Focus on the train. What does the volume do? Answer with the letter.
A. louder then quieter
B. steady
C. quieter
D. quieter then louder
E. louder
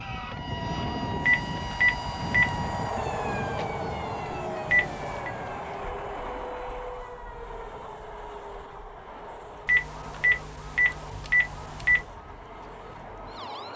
C.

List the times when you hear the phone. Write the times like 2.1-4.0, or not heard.
1.2-2.6, 4.7-5.3, 9.7-12.1.